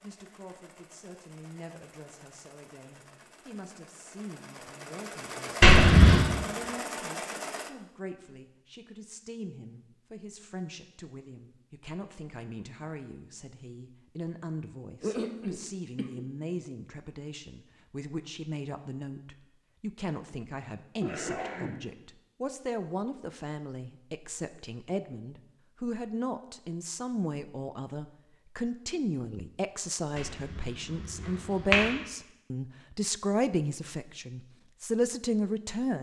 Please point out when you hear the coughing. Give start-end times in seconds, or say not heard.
15.0-16.2, 21.0-21.8.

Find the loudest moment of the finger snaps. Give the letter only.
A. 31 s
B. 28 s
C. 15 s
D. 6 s
D.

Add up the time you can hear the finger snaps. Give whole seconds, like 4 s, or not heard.
2 s.